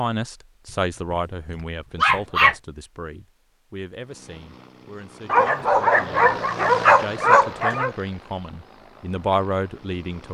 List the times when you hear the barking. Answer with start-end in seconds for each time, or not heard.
2.0-2.5, 5.2-8.0.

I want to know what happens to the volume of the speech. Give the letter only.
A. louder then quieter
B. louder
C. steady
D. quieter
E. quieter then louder
E.